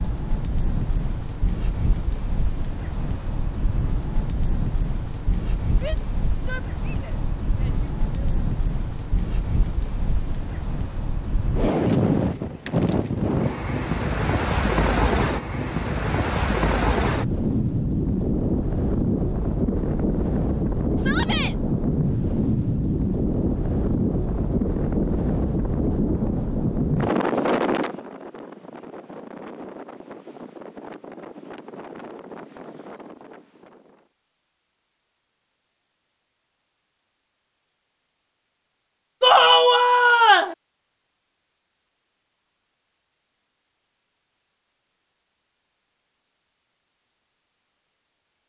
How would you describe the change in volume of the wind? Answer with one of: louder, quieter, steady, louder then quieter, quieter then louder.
louder then quieter.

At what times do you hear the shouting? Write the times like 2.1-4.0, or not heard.
5.8-8.3, 20.9-21.6, 39.2-40.5.